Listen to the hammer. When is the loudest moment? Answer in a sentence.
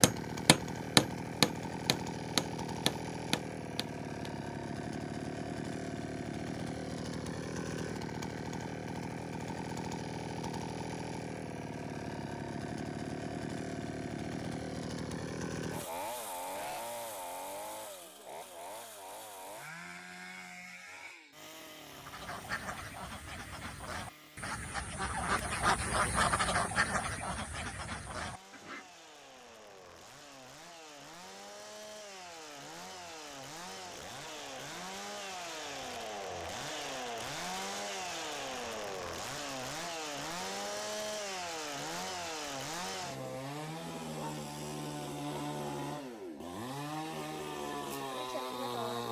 The volume of the hammer peaks at 1 second.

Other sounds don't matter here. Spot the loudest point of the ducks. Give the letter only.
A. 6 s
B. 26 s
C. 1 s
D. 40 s
B.